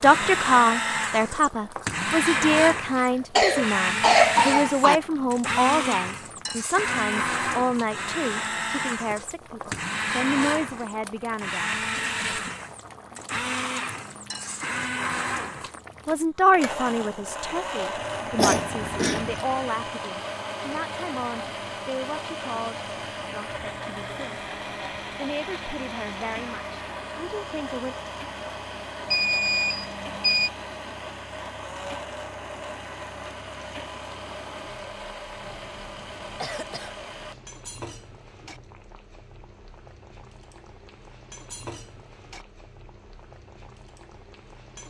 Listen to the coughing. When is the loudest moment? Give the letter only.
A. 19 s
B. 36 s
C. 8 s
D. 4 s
D.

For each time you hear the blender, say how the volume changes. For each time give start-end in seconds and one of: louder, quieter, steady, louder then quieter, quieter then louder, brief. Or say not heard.
0.0-37.4 quieter.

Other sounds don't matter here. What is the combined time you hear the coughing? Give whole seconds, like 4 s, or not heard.
5 s.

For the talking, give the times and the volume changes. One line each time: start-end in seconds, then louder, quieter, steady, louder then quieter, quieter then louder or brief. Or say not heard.
0.0-12.5 quieter
16.1-24.4 quieter
25.1-27.9 brief.